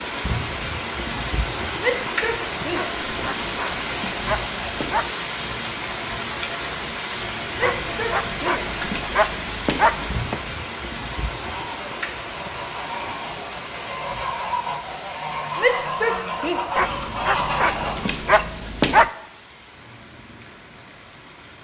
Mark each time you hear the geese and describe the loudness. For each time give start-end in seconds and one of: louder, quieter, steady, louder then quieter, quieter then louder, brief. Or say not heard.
11.3-18.4 louder.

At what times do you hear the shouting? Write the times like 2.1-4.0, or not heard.
1.8-3.0, 7.5-8.8, 15.6-16.6.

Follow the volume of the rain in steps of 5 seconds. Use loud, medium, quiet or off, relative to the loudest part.
loud, loud, medium, quiet, quiet.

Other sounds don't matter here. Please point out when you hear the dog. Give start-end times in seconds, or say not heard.
2.7-5.0, 7.6-10.4, 16.8-19.1.